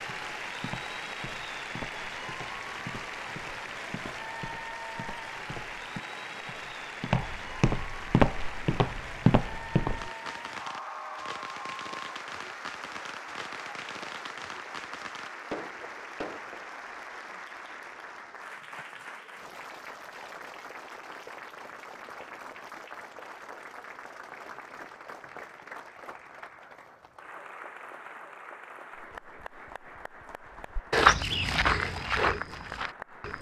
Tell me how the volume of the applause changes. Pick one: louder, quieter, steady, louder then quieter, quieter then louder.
quieter.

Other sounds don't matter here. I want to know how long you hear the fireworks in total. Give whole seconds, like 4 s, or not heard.
7 s.